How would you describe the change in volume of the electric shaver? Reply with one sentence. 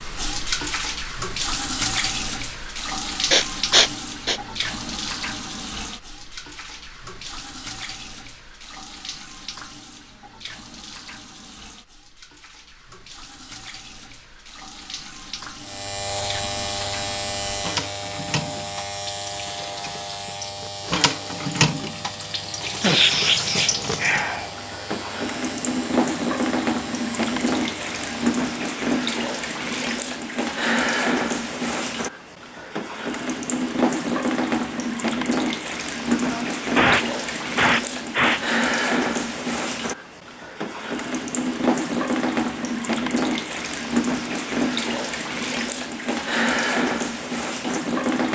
The volume of the electric shaver goes down.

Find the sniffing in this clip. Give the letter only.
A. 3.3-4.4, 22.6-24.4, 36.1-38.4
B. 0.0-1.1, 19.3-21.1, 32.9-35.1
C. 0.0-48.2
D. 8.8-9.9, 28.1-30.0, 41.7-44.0
A.